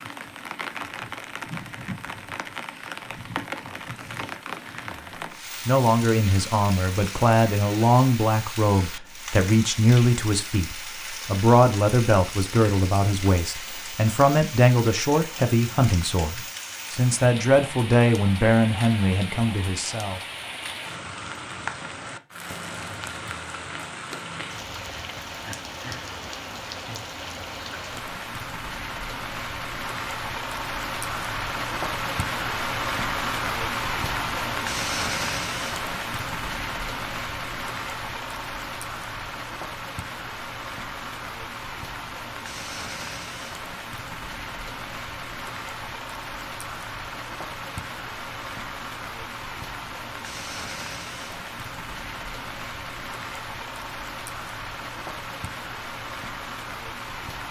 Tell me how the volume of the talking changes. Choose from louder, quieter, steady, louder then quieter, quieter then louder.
steady.